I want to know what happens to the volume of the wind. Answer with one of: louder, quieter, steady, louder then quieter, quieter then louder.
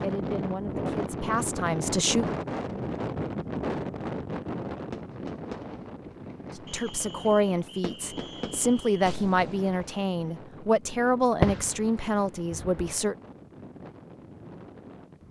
quieter.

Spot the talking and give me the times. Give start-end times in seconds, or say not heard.
0.0-2.4, 6.5-13.2.